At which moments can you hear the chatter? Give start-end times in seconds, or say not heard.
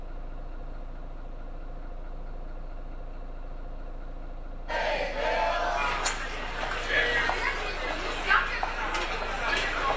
4.7-9.9.